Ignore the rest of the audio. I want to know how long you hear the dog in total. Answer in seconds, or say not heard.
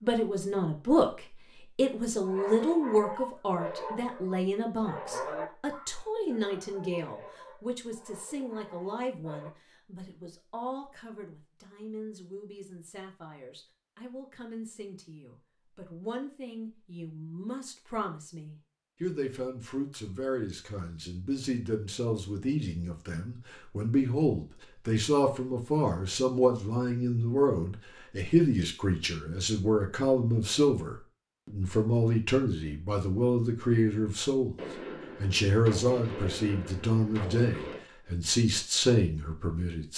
7 s.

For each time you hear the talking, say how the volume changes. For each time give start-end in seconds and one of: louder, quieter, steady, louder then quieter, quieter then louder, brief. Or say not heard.
0.0-34.5 quieter then louder
35.2-39.9 steady.